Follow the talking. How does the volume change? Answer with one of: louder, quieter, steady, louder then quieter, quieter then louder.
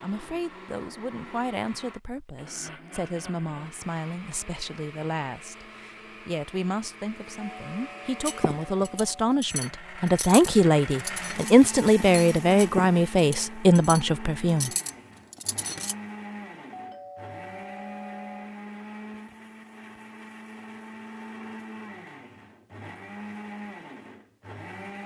louder.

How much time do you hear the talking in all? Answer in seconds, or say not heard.
15 s.